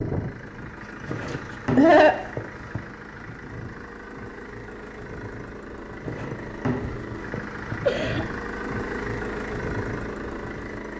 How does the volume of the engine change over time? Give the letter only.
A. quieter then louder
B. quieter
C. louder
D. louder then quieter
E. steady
C.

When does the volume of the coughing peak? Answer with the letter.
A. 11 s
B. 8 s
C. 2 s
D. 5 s
C.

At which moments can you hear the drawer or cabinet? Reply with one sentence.
You can hear the drawer or cabinet from 1.1 to 2.9 s and from 6.0 to 7.8 s.